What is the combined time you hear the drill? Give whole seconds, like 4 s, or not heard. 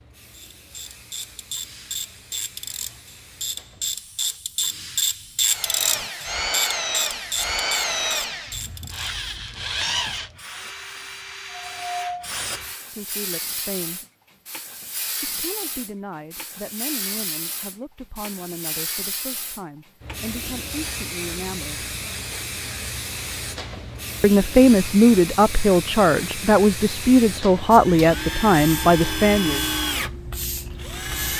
11 s.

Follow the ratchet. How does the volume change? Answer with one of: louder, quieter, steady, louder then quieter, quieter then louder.
louder then quieter.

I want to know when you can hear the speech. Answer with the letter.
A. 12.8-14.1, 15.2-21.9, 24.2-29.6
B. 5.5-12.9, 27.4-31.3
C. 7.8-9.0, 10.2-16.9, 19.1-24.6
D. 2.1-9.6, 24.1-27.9
A.